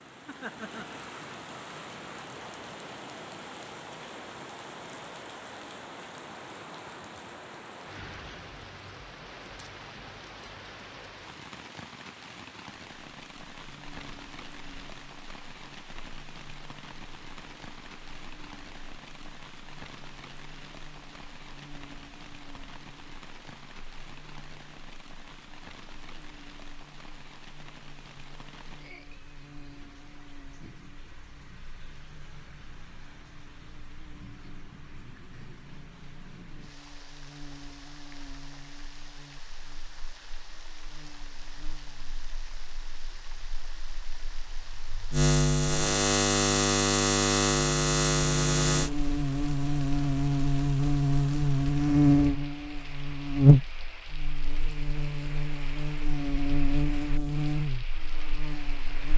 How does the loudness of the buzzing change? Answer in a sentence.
The volume of the buzzing goes up.